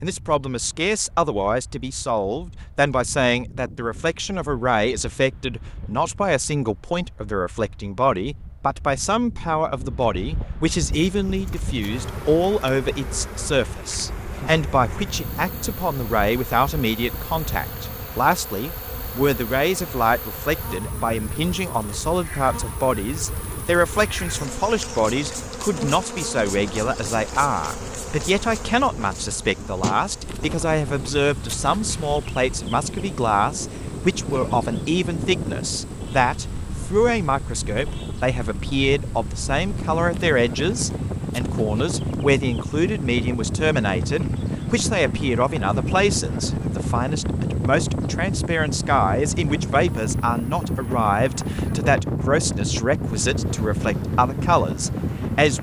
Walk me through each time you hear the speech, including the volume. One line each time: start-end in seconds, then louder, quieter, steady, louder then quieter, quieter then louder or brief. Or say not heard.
0.0-55.5 steady.